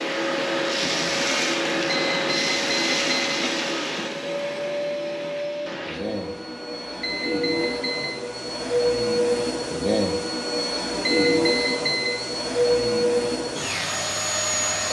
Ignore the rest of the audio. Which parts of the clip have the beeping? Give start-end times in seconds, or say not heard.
1.9-3.4, 7.0-8.1, 11.1-12.1.